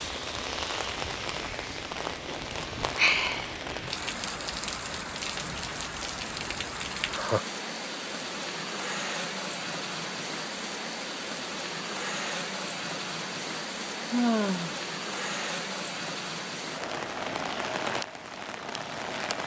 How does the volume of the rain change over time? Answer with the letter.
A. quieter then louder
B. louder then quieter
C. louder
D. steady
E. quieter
D.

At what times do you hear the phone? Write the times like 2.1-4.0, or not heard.
not heard.